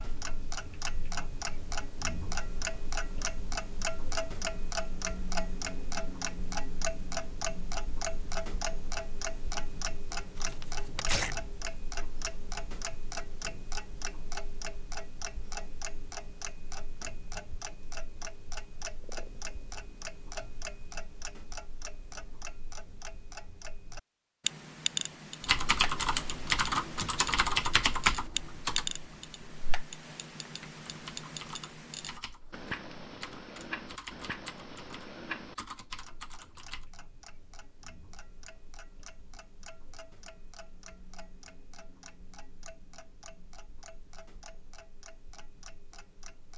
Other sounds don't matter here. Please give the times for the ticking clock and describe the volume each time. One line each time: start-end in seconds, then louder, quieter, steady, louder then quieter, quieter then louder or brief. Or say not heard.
0.0-46.5 quieter.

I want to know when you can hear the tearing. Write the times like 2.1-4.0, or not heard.
10.3-11.3.